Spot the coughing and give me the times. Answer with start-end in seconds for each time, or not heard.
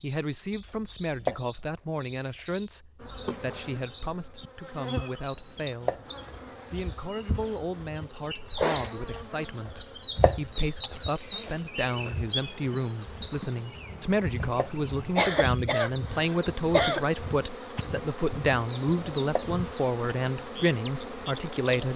15.2-17.1.